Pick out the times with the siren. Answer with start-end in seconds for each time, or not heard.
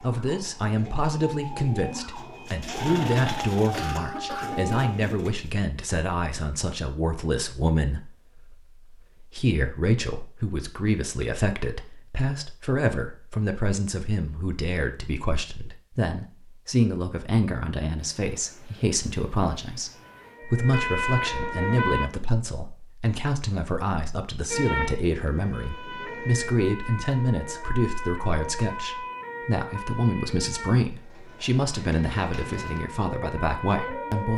0.0-5.0, 19.9-22.1, 24.5-34.3.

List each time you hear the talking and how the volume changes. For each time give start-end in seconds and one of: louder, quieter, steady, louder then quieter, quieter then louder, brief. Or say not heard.
0.0-34.3 steady.